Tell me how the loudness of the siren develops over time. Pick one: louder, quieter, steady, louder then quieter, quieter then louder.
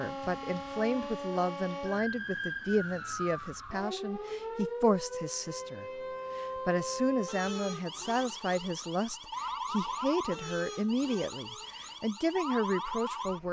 steady.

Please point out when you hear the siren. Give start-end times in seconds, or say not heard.
0.0-13.4.